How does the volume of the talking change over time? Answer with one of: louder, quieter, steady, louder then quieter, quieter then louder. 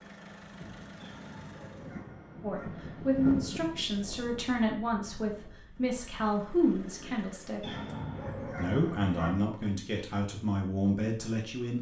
steady.